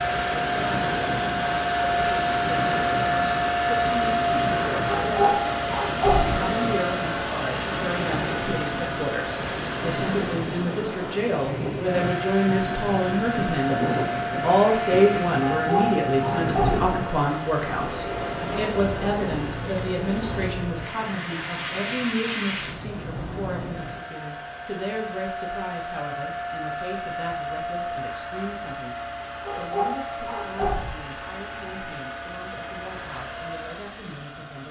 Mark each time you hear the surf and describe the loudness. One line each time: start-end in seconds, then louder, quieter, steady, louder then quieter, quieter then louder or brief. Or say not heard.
0.0-24.1 steady.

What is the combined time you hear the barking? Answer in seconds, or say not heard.
5 s.